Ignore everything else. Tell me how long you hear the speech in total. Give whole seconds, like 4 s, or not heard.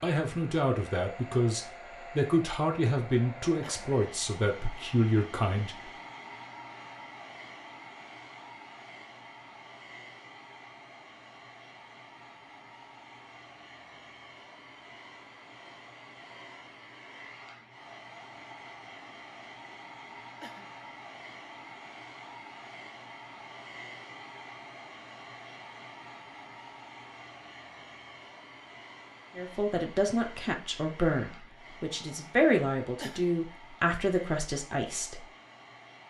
12 s.